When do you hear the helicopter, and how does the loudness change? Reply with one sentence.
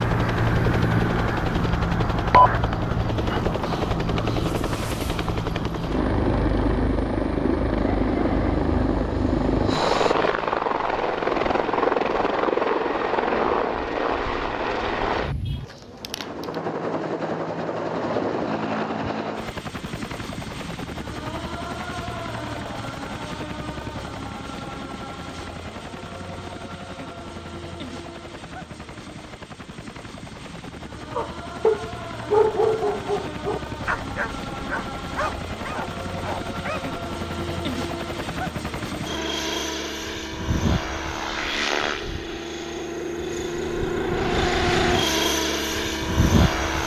You can hear the helicopter from 0.0 to 46.8 s, getting quieter then louder.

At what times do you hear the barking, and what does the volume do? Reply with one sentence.
The barking can be heard briefly from 7.8 to 10.2 s; and from 31.1 to 36.9 s, getting quieter.